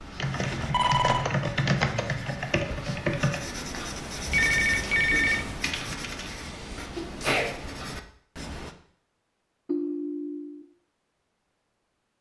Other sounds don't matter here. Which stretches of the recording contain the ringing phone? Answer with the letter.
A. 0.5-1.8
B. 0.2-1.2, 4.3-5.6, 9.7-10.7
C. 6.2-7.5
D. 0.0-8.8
B.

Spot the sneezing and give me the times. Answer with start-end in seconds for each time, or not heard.
6.2-7.5.